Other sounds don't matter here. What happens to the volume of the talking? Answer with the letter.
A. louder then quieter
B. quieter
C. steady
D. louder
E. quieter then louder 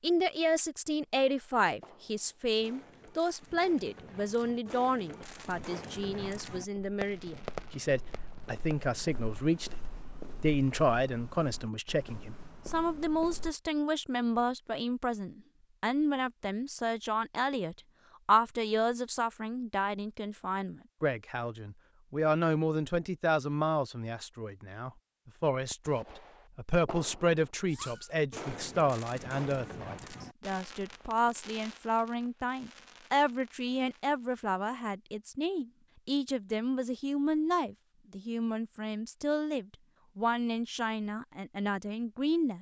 C.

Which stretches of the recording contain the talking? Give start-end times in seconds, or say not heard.
0.0-42.5.